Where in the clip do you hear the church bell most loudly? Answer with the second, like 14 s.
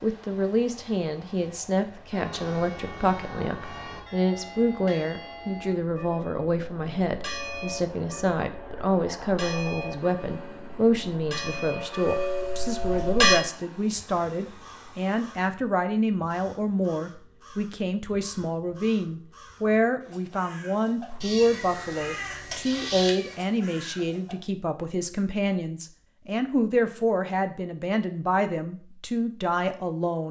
13 s.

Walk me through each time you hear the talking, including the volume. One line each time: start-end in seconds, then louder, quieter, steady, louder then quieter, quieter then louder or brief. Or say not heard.
0.0-30.2 steady.